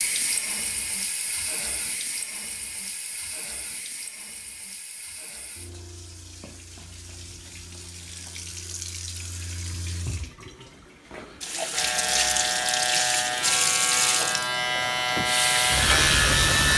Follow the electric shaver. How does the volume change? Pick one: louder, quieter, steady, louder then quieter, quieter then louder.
louder.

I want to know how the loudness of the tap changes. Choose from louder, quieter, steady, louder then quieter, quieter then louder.
quieter then louder.